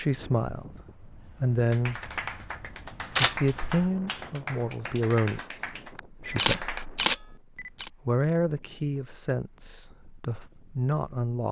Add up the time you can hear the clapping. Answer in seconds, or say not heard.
5 s.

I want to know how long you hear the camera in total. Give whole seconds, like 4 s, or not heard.
2 s.